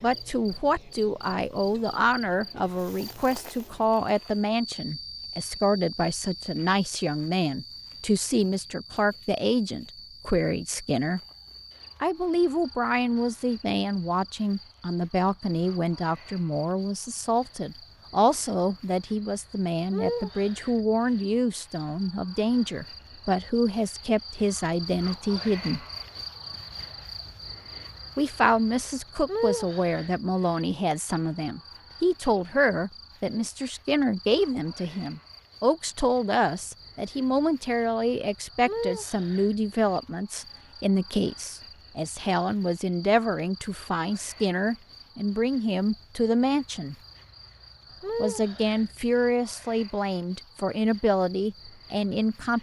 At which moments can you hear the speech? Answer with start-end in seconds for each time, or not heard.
0.0-11.2, 12.0-25.9, 28.1-47.0, 48.1-52.5.